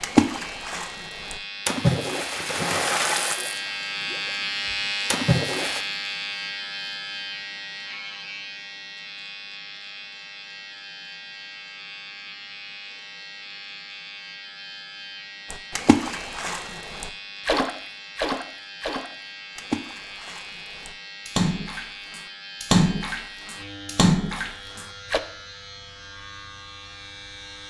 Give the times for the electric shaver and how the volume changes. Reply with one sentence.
You can hear the electric shaver from 0.0 to 27.6 s, getting quieter.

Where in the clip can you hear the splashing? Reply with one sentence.
You can hear the splashing from 0.0 to 4.2 s, from 5.1 to 5.8 s and from 15.5 to 25.2 s.